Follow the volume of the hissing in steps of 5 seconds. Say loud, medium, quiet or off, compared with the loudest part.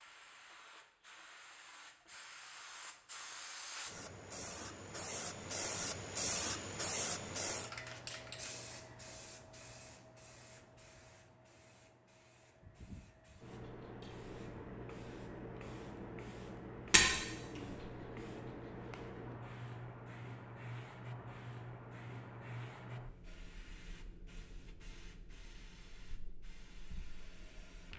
medium, loud, medium, medium, medium, quiet.